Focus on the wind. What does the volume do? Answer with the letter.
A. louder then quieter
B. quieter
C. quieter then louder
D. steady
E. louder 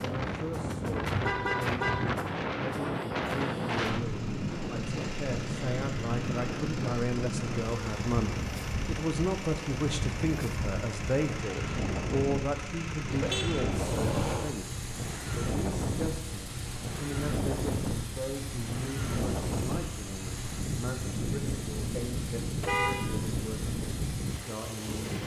D.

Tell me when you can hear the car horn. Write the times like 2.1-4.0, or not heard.
1.1-2.1, 13.1-14.5, 22.6-23.1.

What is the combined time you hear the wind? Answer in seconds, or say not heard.
25 s.